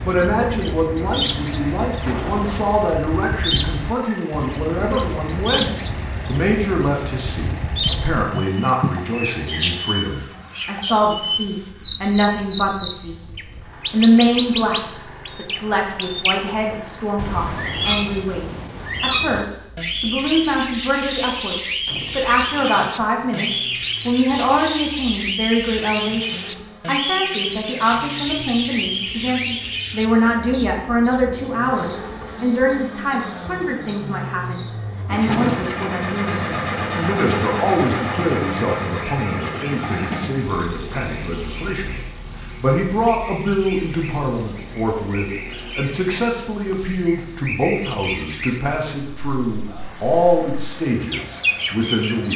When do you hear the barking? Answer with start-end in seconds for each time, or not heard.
not heard.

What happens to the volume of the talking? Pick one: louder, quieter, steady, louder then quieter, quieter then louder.
steady.